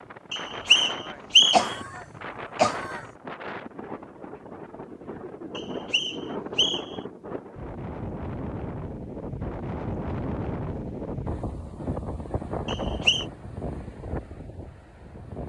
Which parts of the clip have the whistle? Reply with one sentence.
You can hear the whistle from 0.3 to 1.8 s, from 5.5 to 7.0 s and from 12.7 to 13.2 s.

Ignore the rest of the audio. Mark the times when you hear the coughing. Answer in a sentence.
The coughing can be heard from 1.5 to 3.0 s.